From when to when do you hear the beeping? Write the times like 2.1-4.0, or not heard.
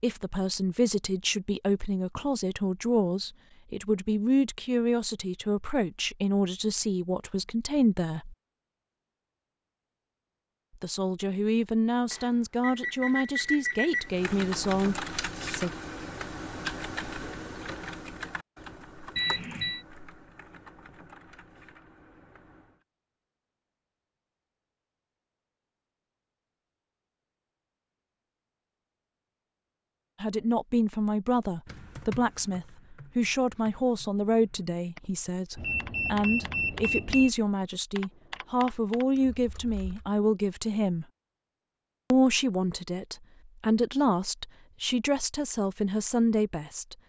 12.1-14.1, 19.1-19.9, 35.5-37.3.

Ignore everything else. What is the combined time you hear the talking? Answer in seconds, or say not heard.
29 s.